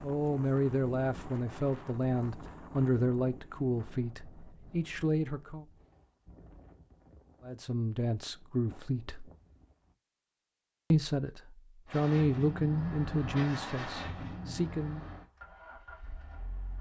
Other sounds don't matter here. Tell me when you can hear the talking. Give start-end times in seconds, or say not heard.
0.0-5.7, 7.4-9.3, 10.9-15.1.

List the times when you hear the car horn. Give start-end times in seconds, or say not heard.
not heard.